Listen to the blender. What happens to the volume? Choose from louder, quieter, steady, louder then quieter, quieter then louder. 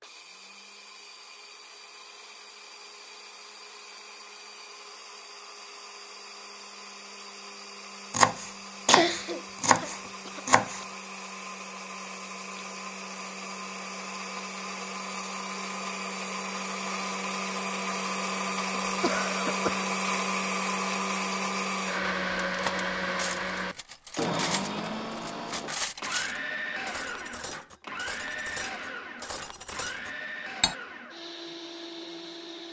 louder then quieter.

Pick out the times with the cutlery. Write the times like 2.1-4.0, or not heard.
22.4-30.8.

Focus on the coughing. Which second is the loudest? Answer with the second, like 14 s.
9 s.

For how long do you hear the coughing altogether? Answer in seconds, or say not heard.
3 s.